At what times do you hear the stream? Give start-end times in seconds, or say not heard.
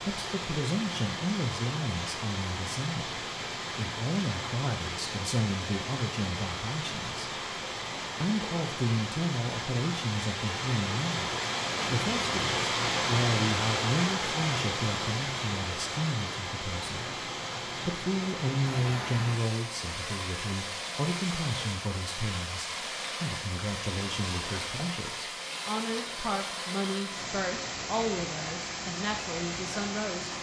0.0-30.3.